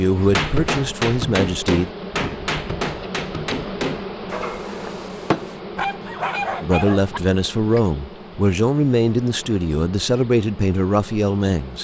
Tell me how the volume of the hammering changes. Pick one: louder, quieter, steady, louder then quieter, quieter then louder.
quieter.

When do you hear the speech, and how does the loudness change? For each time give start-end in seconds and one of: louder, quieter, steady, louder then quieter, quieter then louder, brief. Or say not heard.
0.0-1.9 brief
6.6-11.7 steady.